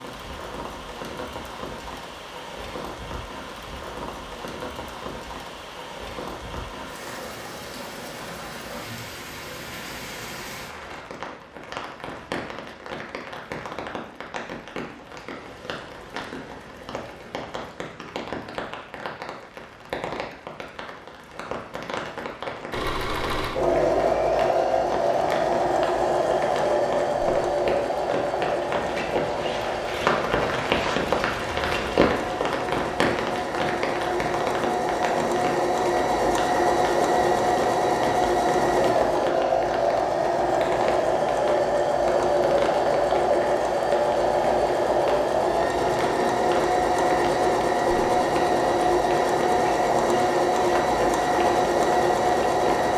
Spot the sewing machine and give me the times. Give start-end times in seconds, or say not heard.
22.7-52.9.